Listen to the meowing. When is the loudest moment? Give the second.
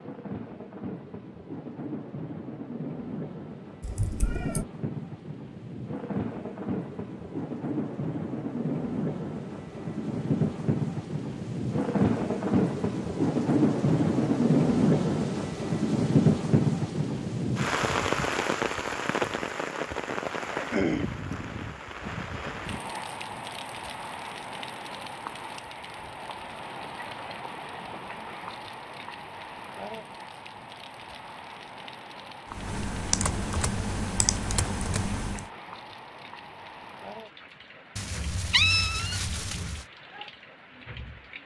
39 s.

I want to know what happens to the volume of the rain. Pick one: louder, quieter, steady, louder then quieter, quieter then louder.
louder then quieter.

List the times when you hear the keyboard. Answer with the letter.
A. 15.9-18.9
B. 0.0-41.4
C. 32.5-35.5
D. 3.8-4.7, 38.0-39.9
C.